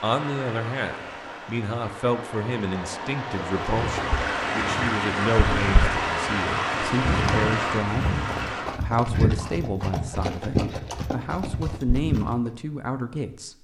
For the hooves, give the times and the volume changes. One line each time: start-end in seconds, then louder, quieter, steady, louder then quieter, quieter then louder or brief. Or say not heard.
3.6-12.5 louder.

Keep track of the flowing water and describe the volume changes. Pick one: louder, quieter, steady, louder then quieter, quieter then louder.
louder.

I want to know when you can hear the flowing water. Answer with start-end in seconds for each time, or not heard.
0.0-8.7.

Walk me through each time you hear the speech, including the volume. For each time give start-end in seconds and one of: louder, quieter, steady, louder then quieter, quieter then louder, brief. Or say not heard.
0.0-13.5 steady.